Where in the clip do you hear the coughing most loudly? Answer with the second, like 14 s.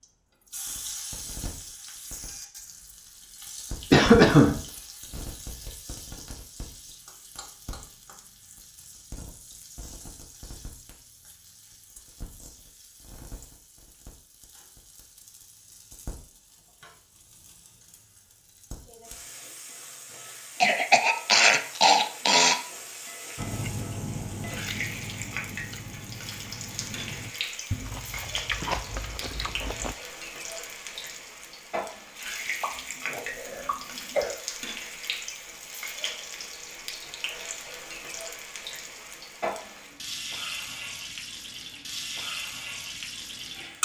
4 s.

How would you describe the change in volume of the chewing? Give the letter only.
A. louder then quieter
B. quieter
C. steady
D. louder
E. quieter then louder
E.